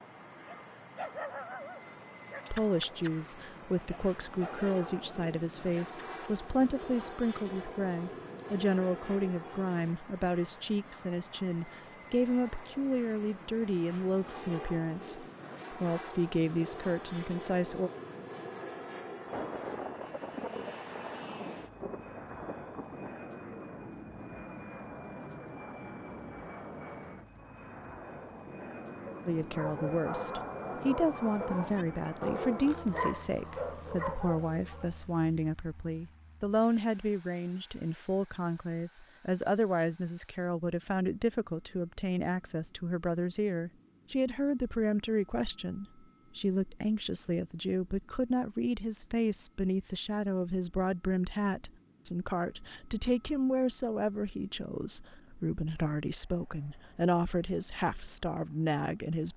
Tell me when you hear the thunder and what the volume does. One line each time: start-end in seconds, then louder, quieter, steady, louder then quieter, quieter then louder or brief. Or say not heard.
19.2-23.2 quieter.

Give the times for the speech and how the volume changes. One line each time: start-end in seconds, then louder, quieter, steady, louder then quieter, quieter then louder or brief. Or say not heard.
2.5-17.9 steady
29.2-59.3 steady.